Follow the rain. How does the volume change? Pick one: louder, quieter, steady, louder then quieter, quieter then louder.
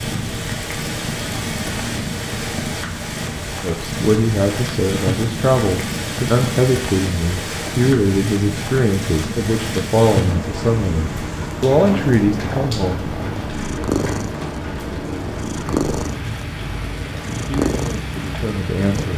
steady.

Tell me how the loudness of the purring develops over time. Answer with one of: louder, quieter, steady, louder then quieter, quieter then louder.
steady.